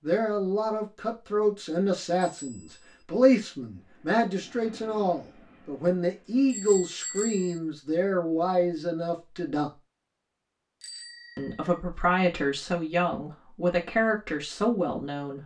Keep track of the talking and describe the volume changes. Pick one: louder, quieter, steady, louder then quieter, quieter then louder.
steady.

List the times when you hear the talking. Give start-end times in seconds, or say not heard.
0.0-9.7, 11.3-15.4.